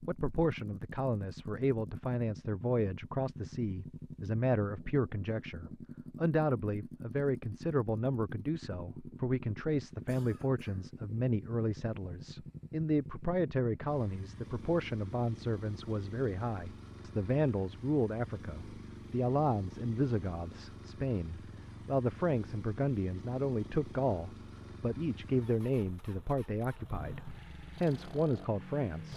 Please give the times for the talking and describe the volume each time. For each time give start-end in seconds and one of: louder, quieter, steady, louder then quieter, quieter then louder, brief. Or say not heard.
0.0-29.1 steady.